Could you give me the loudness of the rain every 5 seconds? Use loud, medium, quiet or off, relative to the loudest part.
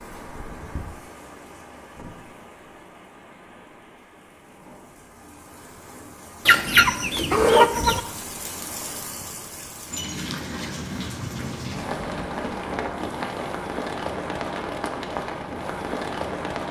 quiet, medium, loud, loud.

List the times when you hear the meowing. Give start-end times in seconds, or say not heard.
not heard.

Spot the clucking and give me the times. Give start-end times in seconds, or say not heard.
6.5-8.0.